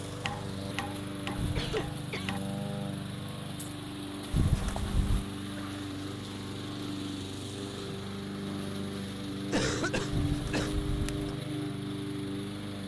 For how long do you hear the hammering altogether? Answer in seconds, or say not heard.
2 s.